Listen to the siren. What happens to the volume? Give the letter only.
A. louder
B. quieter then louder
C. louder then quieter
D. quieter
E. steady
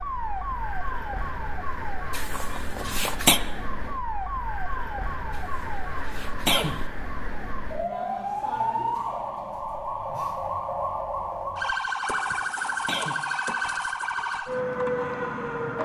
A.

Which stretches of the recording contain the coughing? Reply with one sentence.
You can hear the coughing from 2.1 to 3.4 s, from 5.5 to 6.8 s and from 11.8 to 13.2 s.